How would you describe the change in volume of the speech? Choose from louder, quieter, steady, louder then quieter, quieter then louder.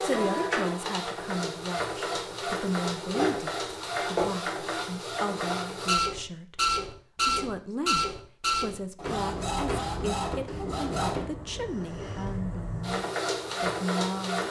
steady.